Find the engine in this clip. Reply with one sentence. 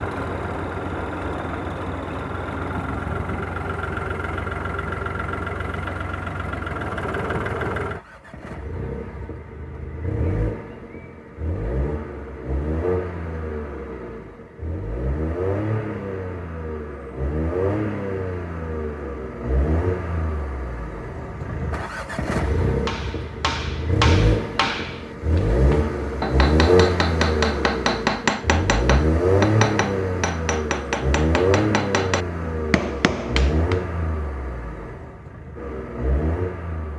You can hear the engine from 0.0 to 36.9 s.